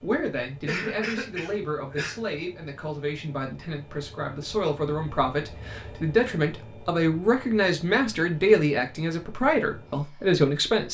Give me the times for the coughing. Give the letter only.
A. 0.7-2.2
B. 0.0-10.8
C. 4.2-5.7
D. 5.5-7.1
A.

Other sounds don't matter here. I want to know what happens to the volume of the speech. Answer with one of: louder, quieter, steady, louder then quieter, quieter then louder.
louder.